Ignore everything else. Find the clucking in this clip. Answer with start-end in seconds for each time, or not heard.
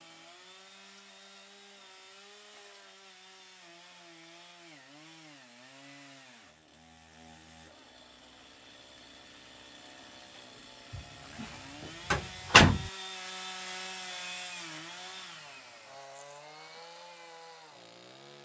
not heard.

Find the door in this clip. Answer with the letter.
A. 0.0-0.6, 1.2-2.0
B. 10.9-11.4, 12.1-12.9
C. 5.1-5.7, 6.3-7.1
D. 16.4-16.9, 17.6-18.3
B.